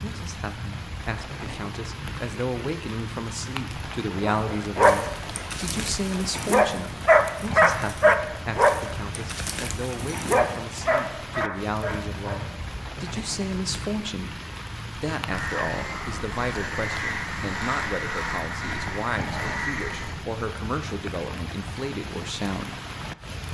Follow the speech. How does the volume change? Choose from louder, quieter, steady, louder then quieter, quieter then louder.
steady.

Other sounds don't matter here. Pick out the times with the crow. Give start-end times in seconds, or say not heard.
15.3-20.1.